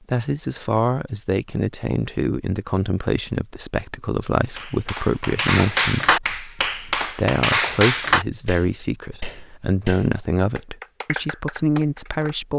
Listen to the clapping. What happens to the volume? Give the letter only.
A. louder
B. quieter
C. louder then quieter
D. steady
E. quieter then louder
E.